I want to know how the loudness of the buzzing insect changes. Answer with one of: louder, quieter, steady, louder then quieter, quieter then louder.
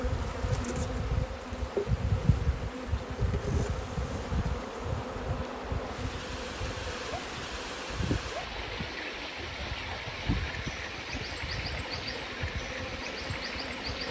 quieter.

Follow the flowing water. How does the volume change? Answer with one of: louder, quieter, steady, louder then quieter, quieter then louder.
louder.